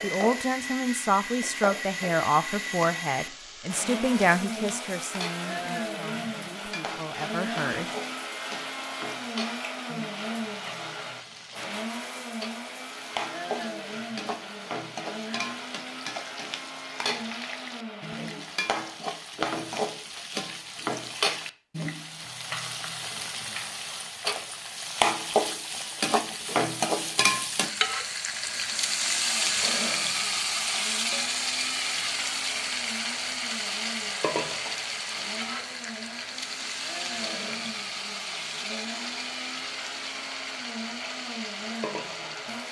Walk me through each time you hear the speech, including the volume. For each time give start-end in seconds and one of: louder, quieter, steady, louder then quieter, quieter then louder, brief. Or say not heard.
0.0-7.8 quieter.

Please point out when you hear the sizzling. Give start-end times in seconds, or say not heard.
0.0-42.6.